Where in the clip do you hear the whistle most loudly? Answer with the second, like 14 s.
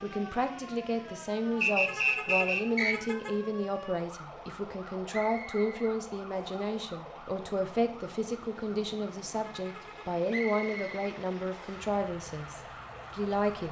2 s.